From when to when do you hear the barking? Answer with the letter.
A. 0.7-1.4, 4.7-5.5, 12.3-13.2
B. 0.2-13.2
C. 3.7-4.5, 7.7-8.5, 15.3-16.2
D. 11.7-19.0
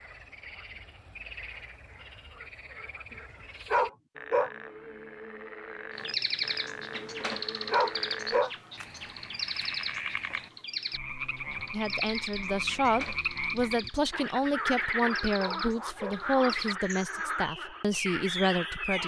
C.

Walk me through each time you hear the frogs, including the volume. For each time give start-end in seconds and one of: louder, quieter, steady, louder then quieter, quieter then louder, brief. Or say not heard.
0.0-19.0 louder.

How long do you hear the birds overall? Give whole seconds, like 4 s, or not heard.
13 s.